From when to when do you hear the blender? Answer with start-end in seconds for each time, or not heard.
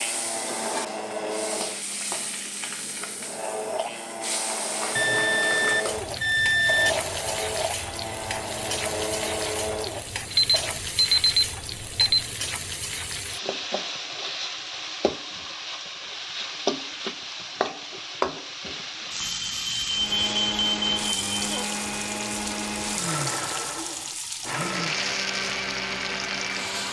0.0-1.9, 3.2-10.8, 19.9-26.8.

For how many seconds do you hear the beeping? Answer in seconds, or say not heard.
6 s.